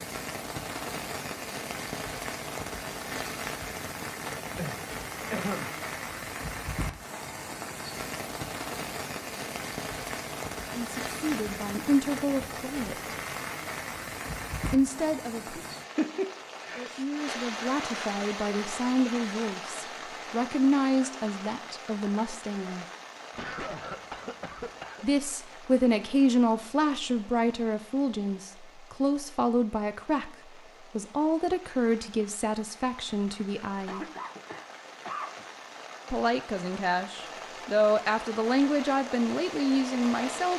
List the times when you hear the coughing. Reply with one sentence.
The coughing can be heard from 4.5 to 5.8 s, from 23.3 to 25.1 s and from 33.9 to 35.5 s.